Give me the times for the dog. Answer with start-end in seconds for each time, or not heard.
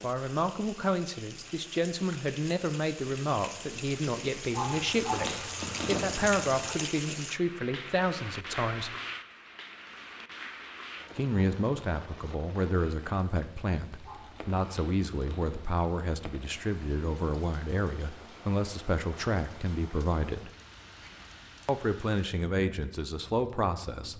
4.5-6.8, 14.0-15.7.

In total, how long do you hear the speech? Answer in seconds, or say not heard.
21 s.